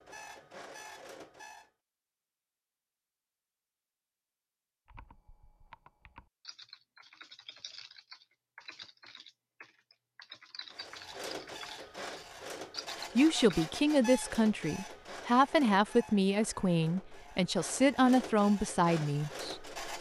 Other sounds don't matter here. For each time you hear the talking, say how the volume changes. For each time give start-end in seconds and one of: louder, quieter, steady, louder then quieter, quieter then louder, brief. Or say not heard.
13.2-19.6 steady.